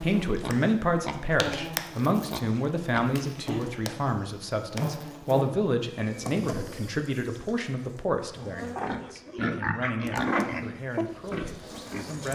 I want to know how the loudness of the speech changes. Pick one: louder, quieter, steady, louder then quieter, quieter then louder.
quieter.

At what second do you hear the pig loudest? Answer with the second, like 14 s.
10 s.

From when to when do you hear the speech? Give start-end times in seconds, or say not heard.
0.0-12.2.